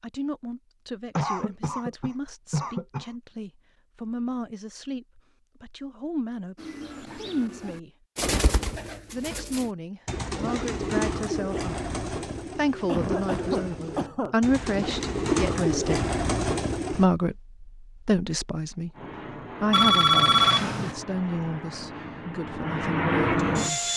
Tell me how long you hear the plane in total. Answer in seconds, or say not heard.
5 s.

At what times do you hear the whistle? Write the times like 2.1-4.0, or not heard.
not heard.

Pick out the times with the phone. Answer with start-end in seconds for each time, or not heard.
19.7-20.9.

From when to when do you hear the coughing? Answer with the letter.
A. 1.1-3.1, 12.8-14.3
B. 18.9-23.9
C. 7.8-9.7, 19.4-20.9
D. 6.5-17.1
A.